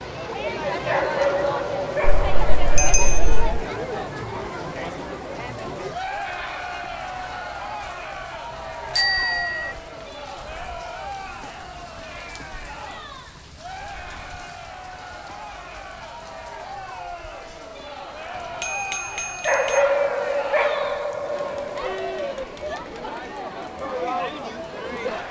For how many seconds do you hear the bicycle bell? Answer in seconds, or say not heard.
4 s.